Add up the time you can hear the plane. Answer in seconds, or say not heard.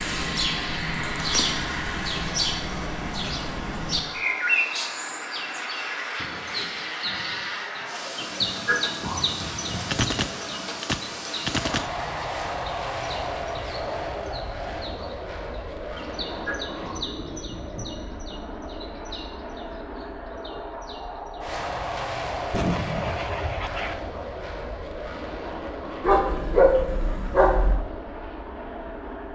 29 s.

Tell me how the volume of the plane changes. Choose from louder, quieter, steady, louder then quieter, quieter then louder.
steady.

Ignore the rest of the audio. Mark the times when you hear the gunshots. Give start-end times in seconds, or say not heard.
9.9-11.8, 21.9-23.9.